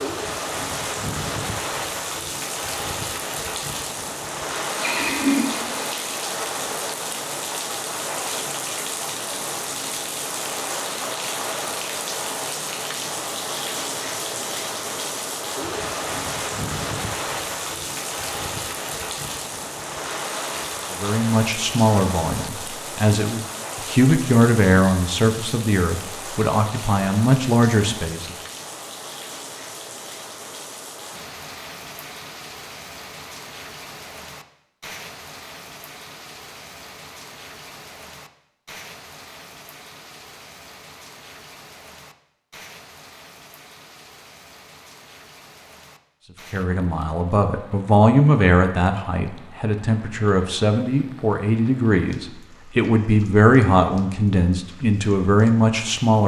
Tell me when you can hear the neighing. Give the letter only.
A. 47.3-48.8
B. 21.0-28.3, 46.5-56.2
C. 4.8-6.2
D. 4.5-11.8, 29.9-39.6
C.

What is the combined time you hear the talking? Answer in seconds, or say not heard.
17 s.